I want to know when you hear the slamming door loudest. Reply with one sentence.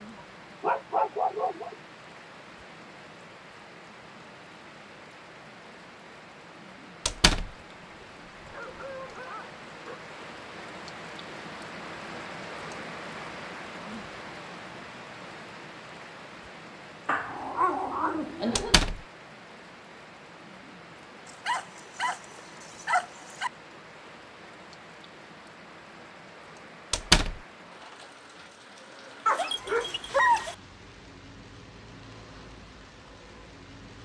The loudest moment of the slamming door is at 27 seconds.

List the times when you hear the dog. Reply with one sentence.
You can hear the dog from 0.6 to 1.8 s, from 7.8 to 10.0 s, from 17.1 to 18.8 s, from 21.4 to 23.5 s and from 29.2 to 30.6 s.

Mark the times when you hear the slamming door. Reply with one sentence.
You can hear the slamming door from 7.0 to 7.5 s, from 18.6 to 19.0 s and from 26.9 to 27.4 s.